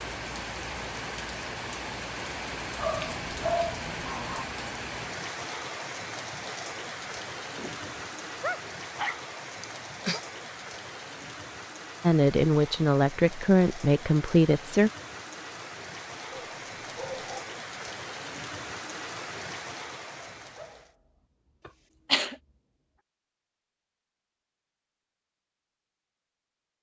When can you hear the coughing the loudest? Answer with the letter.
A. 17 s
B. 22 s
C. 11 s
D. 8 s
B.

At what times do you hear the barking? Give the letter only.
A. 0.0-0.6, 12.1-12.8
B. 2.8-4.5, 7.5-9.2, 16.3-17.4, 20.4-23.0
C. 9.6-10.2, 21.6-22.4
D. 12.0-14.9
B.